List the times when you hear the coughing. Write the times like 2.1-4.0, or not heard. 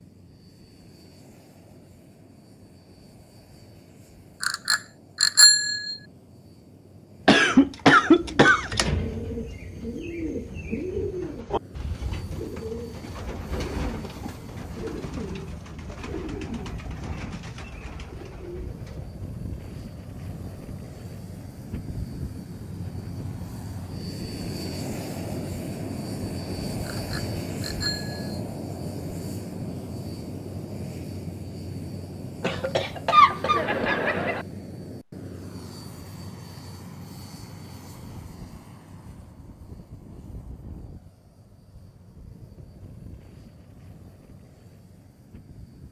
7.2-8.7, 32.4-34.5.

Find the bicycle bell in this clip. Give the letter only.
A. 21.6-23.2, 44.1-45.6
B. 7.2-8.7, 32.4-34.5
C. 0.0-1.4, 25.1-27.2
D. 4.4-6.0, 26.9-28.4
D.